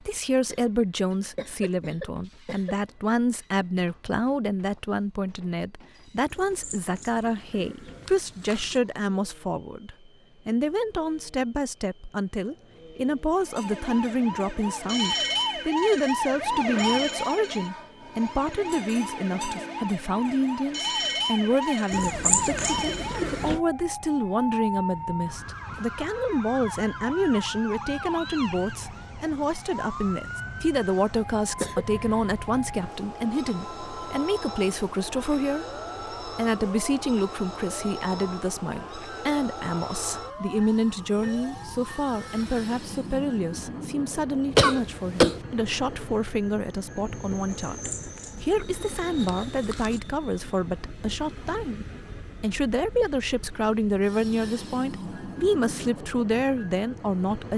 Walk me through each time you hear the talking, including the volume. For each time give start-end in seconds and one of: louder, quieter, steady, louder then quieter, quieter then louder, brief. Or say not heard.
0.1-57.5 steady.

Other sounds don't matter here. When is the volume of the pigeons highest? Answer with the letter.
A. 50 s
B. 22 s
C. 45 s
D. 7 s
B.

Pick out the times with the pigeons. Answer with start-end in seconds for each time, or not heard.
6.3-8.8, 21.9-23.6, 47.6-50.0.